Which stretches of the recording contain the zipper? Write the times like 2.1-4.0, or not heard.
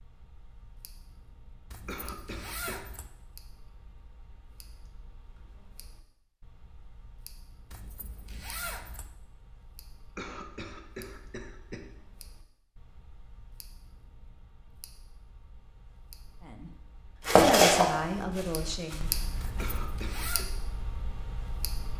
1.7-3.1, 7.7-9.1, 19.4-20.4.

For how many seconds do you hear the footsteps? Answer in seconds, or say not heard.
2 s.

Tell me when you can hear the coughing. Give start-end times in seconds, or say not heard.
1.9-2.9, 10.2-11.8, 19.6-20.5.